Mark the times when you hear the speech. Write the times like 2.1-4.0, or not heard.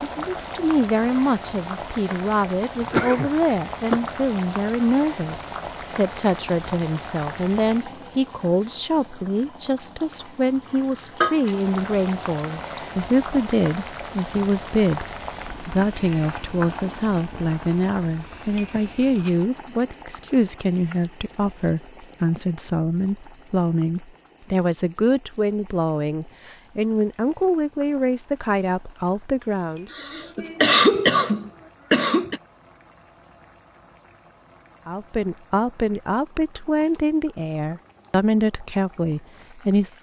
0.0-29.9, 34.9-39.9.